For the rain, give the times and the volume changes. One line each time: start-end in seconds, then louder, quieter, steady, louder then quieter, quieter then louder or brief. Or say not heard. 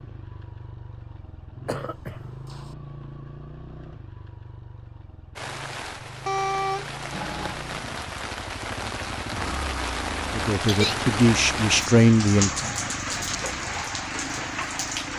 5.3-15.1 louder.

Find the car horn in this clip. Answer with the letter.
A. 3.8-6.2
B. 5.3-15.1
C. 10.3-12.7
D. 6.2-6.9
D.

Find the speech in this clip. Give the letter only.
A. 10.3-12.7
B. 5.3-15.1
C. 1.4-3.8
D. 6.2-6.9
A.